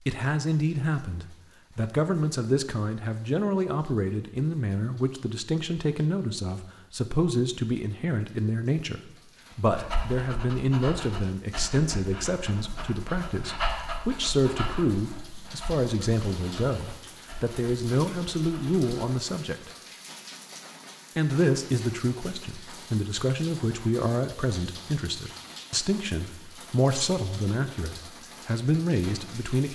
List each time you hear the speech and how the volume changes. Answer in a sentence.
The speech can be heard from 0.0 to 19.7 s, at a steady volume; and from 21.1 to 29.6 s, at a steady volume.